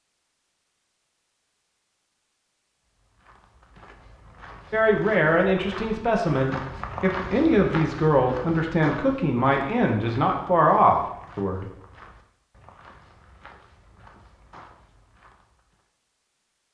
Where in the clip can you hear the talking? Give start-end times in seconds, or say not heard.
4.7-11.7.